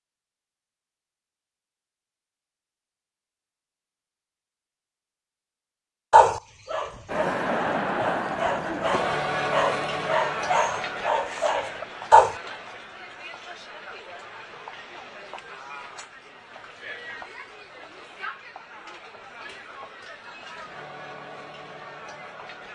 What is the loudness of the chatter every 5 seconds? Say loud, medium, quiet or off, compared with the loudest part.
off, loud, medium, quiet, quiet.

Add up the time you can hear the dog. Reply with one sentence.
You can hear the dog for 6 seconds altogether.